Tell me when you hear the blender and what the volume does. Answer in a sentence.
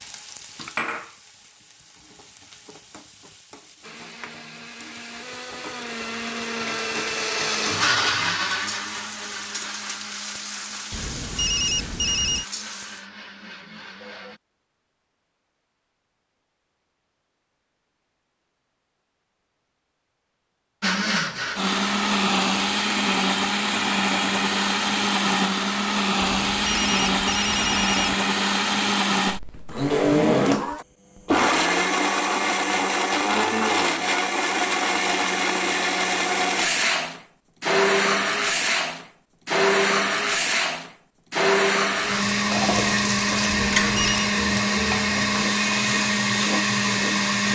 You can hear the blender from 3.8 to 14.4 s, getting louder then quieter; and from 20.8 to 47.5 s, at a steady volume.